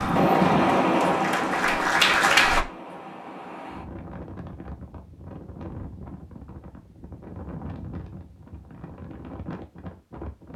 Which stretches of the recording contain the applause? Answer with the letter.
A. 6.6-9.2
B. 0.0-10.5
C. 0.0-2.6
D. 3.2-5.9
C.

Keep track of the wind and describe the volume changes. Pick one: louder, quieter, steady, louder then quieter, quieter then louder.
quieter.